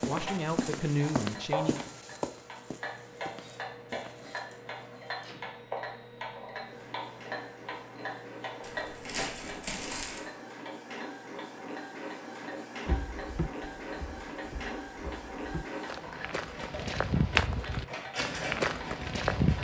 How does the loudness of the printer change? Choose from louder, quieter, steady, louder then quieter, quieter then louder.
louder.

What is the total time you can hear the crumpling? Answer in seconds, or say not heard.
2 s.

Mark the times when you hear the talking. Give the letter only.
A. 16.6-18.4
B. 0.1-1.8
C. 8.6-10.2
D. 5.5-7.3
B.